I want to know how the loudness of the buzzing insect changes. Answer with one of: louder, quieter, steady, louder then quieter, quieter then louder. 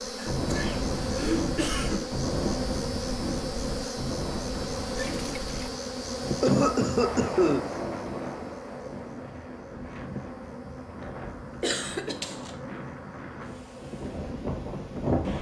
quieter.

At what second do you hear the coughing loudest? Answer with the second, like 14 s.
7 s.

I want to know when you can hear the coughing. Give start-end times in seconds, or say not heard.
0.1-2.0, 6.4-7.6, 11.6-12.5.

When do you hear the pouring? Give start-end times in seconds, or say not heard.
5.0-5.8.